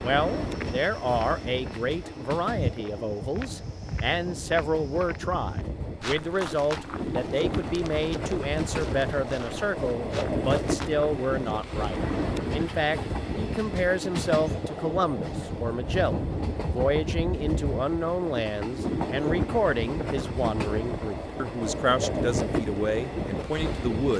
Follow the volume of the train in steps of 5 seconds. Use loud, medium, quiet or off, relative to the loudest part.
medium, loud, loud, loud, loud.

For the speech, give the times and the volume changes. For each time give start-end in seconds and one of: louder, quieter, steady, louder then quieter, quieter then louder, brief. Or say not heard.
0.0-24.1 steady.